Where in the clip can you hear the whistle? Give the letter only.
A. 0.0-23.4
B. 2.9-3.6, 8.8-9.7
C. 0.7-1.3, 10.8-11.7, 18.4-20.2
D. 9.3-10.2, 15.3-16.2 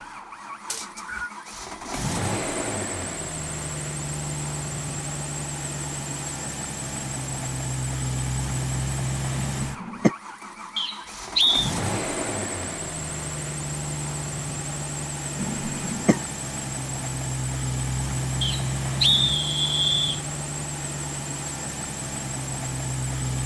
C.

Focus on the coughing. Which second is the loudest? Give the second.
10 s.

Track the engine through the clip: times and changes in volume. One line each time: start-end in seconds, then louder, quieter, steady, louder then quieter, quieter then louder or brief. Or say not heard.
0.0-23.4 steady.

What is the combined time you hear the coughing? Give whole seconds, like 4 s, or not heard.
2 s.